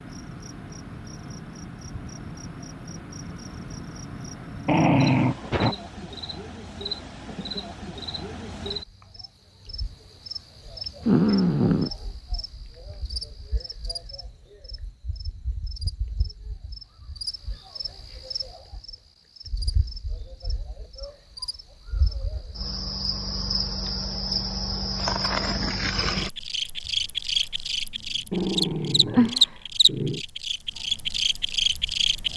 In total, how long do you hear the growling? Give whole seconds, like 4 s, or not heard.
4 s.